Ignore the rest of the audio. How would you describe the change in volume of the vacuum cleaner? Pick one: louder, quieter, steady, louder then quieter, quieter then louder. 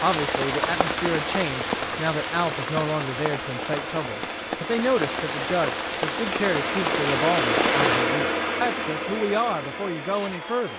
louder then quieter.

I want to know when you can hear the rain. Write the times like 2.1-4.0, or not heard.
0.0-8.1.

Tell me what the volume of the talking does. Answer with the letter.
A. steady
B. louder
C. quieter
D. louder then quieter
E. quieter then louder
A.